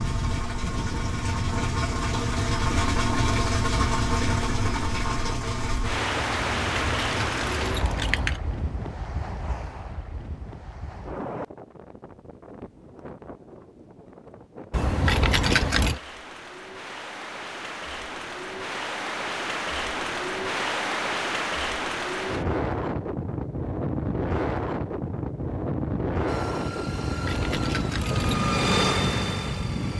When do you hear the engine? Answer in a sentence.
You can hear the engine from 0.0 to 7.8 s and from 26.2 to 29.9 s.